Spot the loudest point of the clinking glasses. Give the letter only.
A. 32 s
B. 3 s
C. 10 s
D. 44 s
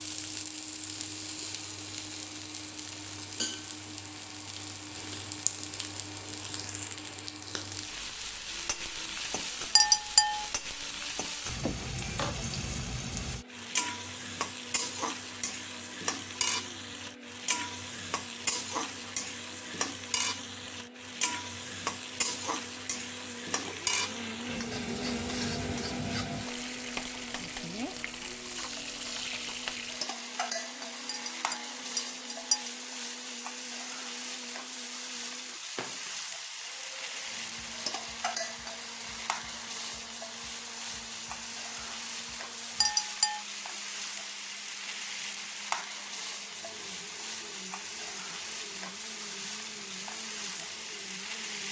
C.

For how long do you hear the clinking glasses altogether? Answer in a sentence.
The clinking glasses can be heard for 3 seconds in total.